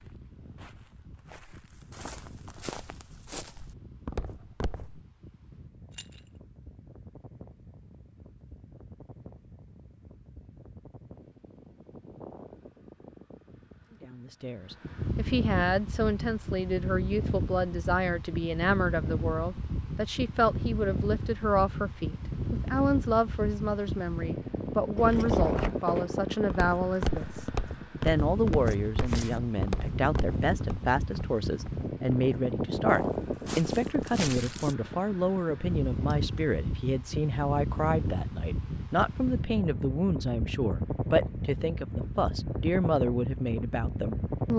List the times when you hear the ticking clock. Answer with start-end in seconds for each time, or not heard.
not heard.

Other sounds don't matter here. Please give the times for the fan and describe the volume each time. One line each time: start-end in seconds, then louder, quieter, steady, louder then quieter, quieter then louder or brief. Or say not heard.
0.0-44.5 louder.